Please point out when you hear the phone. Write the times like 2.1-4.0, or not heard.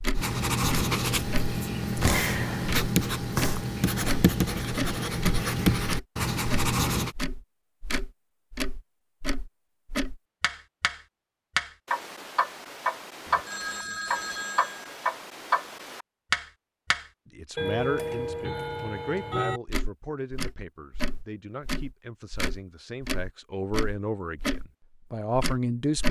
13.2-14.9.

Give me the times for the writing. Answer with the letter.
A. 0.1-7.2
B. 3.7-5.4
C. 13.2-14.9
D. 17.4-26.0
A.